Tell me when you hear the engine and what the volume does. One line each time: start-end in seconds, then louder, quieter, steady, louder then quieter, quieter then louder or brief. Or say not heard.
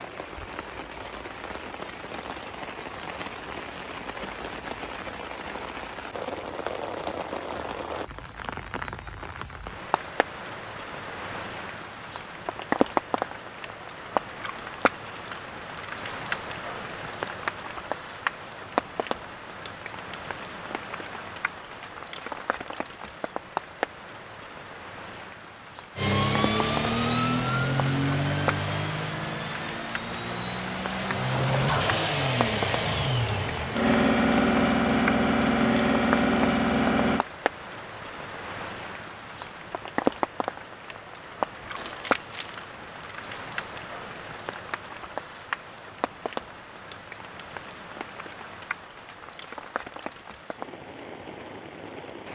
25.9-37.2 quieter then louder.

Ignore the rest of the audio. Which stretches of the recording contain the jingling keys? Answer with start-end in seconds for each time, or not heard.
41.6-42.6.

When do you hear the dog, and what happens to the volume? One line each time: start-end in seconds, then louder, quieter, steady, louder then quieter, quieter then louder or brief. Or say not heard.
not heard.